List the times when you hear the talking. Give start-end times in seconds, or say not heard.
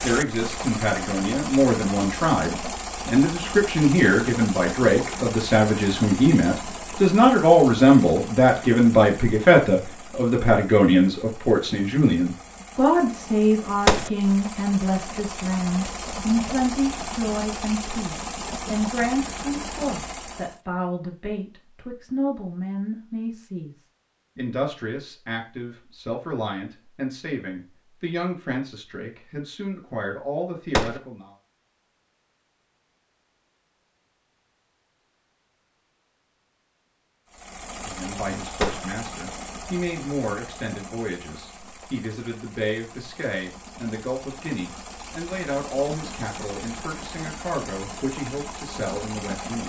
0.0-31.3, 37.9-49.6.